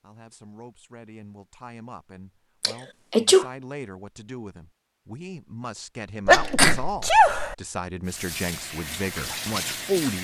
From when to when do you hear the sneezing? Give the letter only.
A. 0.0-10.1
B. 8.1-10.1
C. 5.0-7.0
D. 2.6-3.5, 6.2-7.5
D.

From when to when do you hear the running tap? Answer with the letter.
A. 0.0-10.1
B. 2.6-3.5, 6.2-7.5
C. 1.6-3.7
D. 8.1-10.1
D.